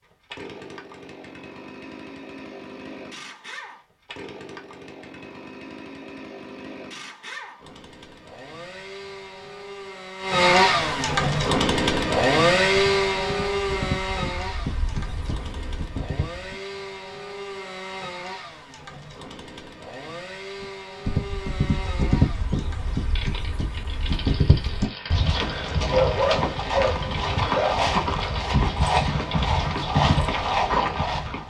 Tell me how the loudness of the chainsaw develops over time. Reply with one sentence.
The loudness of the chainsaw goes up, then down.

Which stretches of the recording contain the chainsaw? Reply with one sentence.
The chainsaw can be heard from 0.0 to 31.1 s.